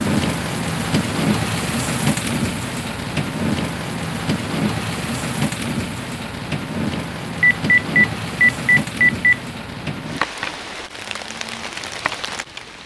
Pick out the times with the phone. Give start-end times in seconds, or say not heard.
7.4-9.3.